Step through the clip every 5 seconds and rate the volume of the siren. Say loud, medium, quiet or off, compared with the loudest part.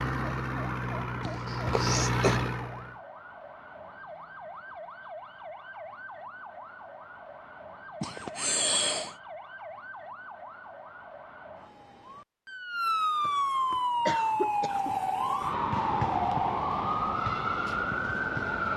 quiet, quiet, loud, loud.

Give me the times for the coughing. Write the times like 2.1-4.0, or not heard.
1.2-2.4, 8.0-9.2, 13.2-14.9.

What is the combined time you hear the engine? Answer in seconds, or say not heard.
3 s.